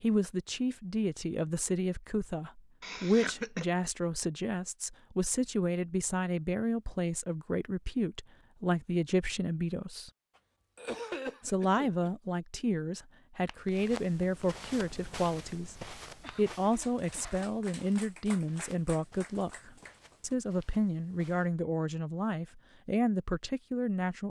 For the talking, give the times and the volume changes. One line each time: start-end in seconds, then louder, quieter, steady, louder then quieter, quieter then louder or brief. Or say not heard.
0.0-10.1 steady
11.4-24.2 steady.